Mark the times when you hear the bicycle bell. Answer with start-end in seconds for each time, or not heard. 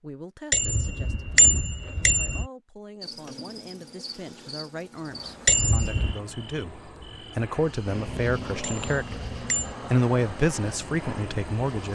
0.5-2.5, 5.5-6.2, 8.6-9.8.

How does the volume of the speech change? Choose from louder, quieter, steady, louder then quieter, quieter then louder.
louder.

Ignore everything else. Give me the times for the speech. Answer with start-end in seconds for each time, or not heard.
0.0-11.9.